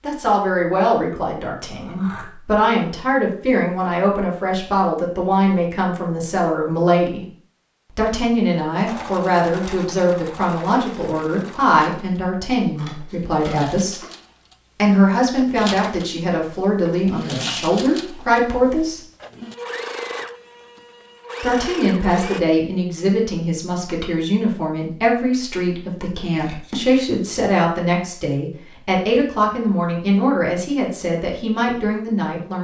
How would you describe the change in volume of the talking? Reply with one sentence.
The volume of the talking stays about the same.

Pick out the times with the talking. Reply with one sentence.
The talking can be heard from 0.0 to 7.2 s, from 8.0 to 14.0 s, from 14.8 to 19.0 s and from 21.4 to 32.5 s.